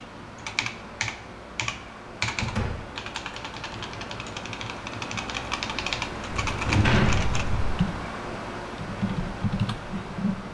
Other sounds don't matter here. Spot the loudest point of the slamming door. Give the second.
7 s.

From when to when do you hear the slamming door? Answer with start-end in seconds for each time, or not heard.
2.4-2.9, 6.3-7.7.